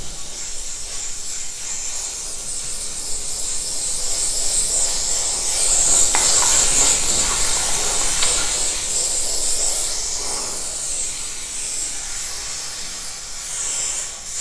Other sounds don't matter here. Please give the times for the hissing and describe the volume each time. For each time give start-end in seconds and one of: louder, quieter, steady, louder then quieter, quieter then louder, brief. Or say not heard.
0.0-14.3 louder then quieter.